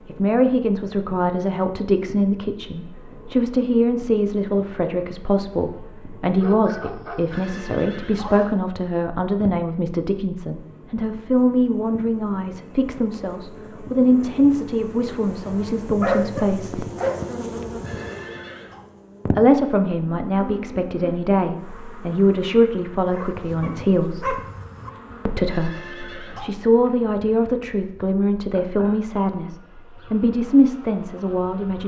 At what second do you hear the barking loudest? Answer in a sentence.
The loudest moment of the barking is at 16 seconds.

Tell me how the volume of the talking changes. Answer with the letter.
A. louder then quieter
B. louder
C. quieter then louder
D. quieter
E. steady
E.